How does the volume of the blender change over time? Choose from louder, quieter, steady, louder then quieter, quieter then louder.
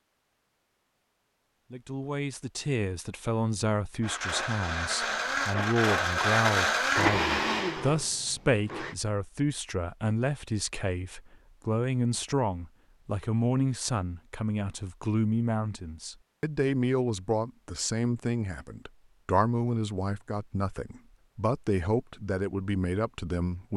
louder then quieter.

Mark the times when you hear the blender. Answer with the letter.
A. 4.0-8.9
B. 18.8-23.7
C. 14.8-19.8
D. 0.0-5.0
A.